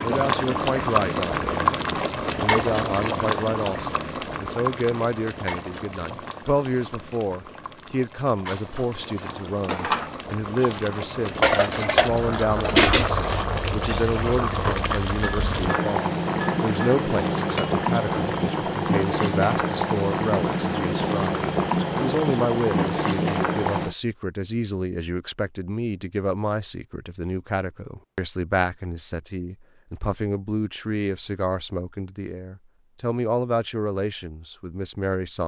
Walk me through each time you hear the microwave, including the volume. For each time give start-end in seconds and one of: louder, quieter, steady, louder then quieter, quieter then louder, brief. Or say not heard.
not heard.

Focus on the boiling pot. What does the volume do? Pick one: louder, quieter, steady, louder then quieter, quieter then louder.
quieter then louder.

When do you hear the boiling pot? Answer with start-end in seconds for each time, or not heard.
0.0-23.9.